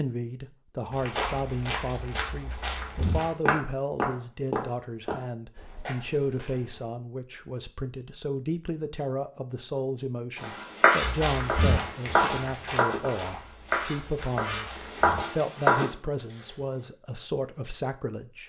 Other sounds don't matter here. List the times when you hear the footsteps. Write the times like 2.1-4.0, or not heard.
0.9-6.8, 11.0-16.9.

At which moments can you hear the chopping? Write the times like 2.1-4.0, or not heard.
10.3-15.9.